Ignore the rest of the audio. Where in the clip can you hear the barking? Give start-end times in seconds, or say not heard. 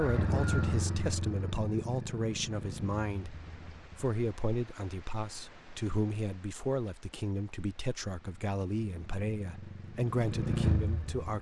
not heard.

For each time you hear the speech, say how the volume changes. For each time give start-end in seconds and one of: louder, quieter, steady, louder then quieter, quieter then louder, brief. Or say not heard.
0.0-11.3 steady.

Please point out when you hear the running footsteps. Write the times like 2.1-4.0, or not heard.
not heard.